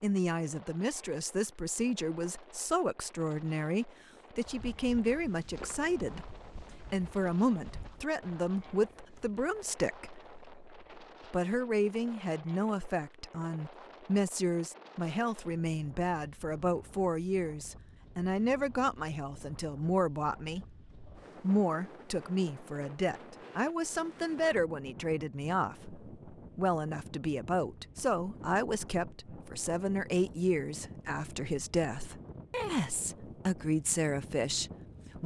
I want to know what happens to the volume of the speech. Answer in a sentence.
The loudness of the speech stays about the same.